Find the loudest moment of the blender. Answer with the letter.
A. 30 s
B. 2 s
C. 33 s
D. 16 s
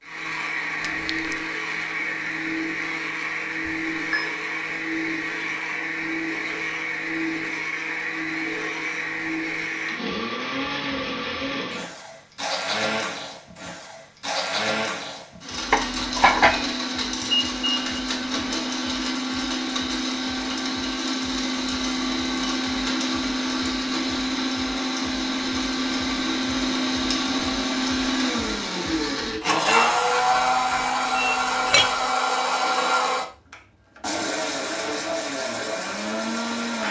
A.